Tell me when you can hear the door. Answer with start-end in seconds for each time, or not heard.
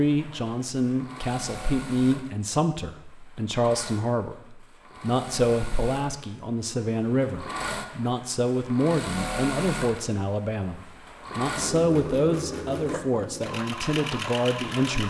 not heard.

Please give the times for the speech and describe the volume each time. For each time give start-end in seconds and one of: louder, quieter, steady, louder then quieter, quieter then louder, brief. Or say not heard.
0.0-15.0 steady.